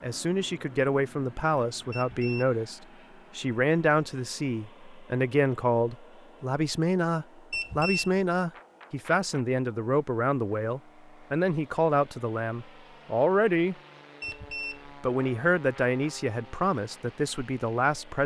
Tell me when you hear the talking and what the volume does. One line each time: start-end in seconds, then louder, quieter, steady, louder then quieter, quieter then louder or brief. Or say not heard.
0.0-18.2 steady.